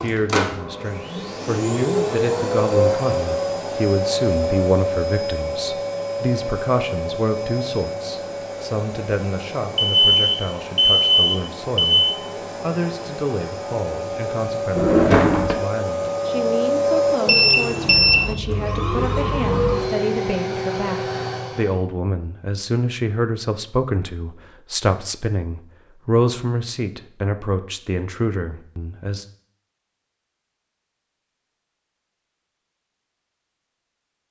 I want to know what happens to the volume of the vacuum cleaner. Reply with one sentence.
The loudness of the vacuum cleaner goes down, then up.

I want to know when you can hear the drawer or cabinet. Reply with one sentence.
The drawer or cabinet can be heard from 14.8 to 15.6 s.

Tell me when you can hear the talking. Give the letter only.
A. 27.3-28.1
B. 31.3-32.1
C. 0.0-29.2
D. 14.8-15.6
C.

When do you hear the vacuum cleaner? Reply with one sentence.
You can hear the vacuum cleaner from 0.0 to 21.8 s.